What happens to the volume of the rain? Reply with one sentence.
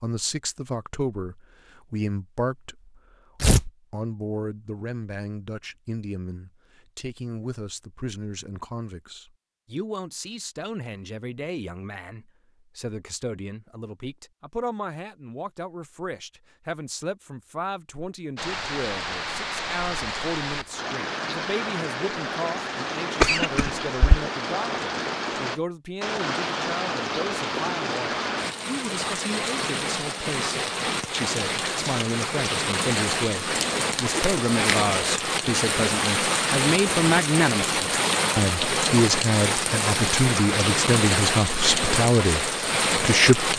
The loudness of the rain goes up.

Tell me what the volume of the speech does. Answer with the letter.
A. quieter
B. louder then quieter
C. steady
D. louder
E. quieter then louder
D.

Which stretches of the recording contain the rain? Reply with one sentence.
The rain can be heard from 18.4 to 43.5 s.